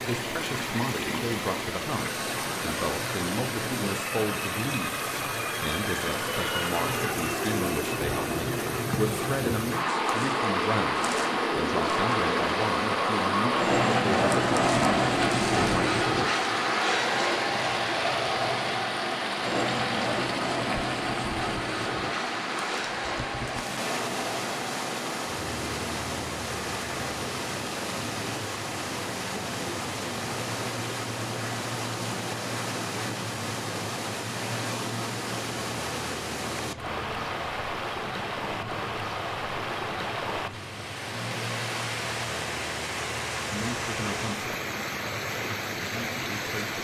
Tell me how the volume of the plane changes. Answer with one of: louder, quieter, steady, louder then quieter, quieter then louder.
louder then quieter.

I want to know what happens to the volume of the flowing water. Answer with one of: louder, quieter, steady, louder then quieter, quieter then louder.
steady.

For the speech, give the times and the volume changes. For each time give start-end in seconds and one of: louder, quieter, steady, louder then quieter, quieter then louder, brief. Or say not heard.
0.0-15.9 steady
43.5-44.5 brief
45.6-46.7 brief.